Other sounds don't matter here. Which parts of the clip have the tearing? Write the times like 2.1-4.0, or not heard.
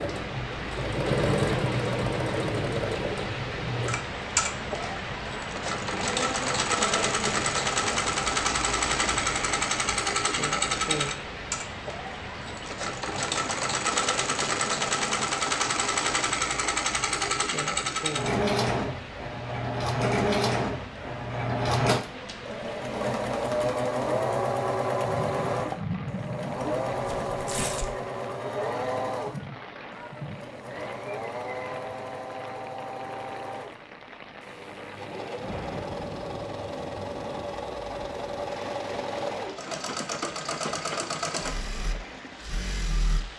27.0-27.9.